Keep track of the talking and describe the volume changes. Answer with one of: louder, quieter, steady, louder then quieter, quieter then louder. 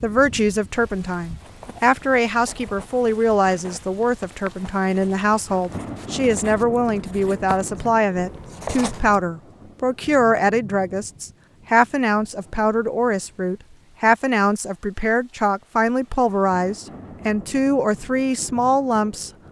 steady.